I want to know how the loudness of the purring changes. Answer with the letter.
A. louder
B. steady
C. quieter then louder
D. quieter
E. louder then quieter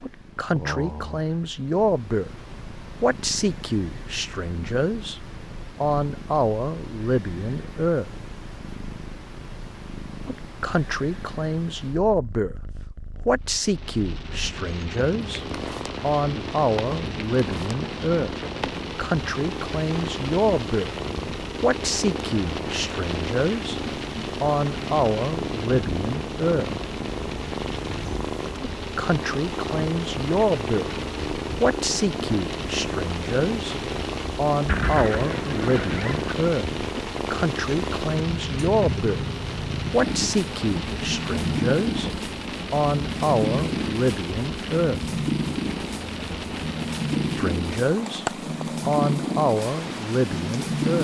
A.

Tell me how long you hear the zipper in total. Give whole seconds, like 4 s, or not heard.
2 s.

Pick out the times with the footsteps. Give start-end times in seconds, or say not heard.
not heard.